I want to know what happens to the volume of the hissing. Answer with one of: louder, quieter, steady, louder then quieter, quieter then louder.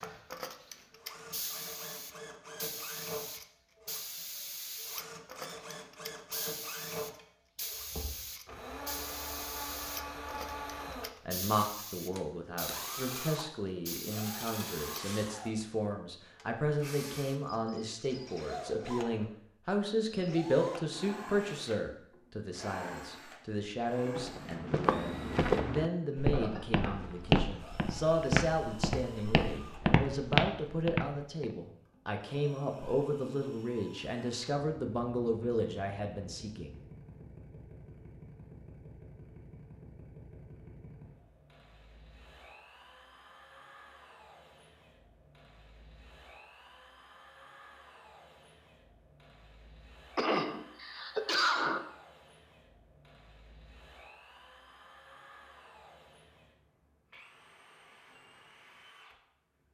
steady.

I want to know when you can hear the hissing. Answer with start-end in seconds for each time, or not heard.
0.0-15.3.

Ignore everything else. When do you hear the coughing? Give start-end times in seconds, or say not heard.
26.3-27.1, 50.1-51.8.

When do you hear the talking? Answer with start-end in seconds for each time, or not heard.
11.2-36.8.